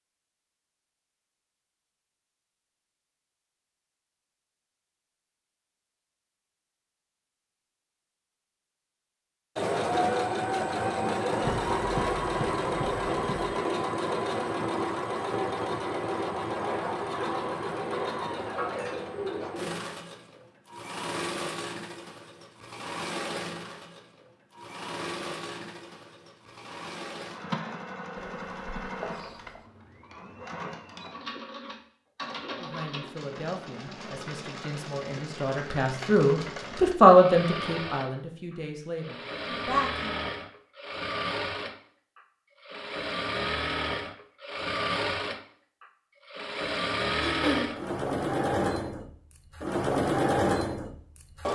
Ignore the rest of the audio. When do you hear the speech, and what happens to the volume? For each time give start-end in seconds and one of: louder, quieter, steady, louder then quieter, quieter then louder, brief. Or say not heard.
32.6-40.2 louder then quieter.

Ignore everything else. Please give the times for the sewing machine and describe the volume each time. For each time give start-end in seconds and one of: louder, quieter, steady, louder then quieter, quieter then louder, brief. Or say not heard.
9.6-51.5 quieter then louder.